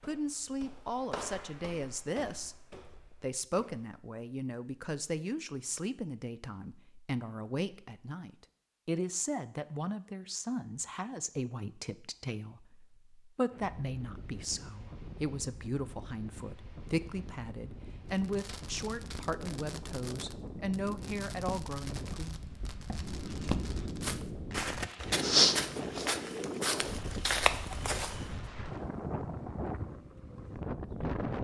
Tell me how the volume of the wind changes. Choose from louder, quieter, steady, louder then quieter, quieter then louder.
louder.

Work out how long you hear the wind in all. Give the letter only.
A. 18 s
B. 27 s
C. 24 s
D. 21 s
A.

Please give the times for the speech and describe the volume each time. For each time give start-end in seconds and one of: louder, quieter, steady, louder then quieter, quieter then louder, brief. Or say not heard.
0.0-22.4 steady.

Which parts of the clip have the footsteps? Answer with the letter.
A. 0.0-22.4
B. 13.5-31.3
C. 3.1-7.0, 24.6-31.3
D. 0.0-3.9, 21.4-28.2
D.